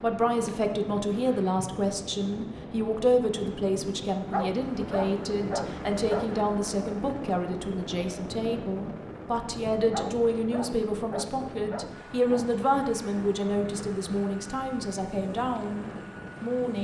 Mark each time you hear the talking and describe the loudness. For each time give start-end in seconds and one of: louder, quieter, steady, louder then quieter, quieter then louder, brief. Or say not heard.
0.0-16.7 steady.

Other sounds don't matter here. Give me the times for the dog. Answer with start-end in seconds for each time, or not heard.
4.3-6.4, 9.9-12.4.